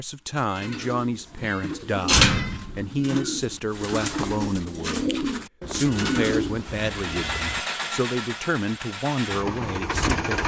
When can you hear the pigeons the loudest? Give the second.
2 s.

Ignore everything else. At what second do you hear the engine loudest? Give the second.
10 s.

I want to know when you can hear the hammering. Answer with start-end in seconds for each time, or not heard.
not heard.